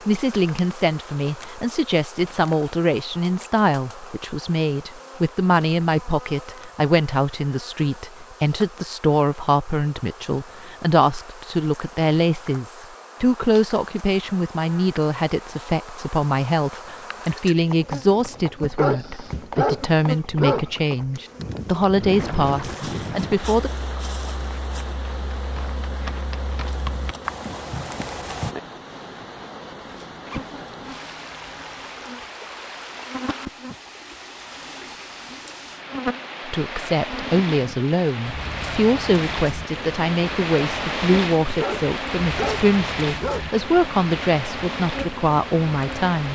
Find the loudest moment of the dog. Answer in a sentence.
The volume of the dog peaks at 20 seconds.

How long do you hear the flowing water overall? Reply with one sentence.
You can hear the flowing water for 24 seconds altogether.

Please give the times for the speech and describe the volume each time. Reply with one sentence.
You can hear the speech from 0.1 to 23.7 s, at a steady volume; and from 36.5 to 46.3 s, at a steady volume.